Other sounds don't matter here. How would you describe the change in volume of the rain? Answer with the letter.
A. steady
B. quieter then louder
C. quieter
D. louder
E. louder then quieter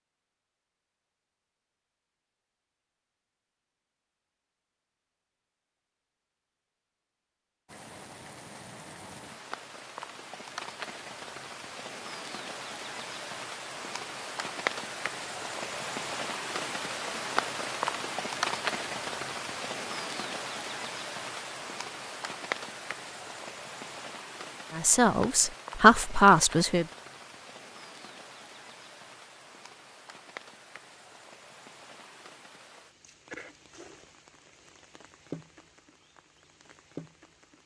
E.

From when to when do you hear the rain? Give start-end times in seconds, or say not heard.
7.7-37.6.